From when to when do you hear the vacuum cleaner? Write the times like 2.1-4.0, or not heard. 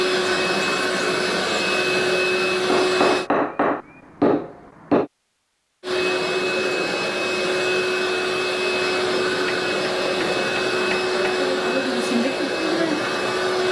0.0-3.3, 5.8-13.6.